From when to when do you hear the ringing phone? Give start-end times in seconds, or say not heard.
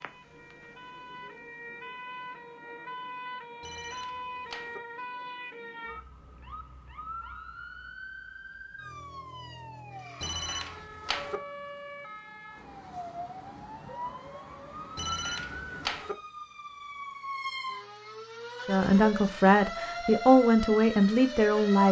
3.6-4.8, 10.2-11.4, 14.9-16.1.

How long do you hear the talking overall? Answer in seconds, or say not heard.
3 s.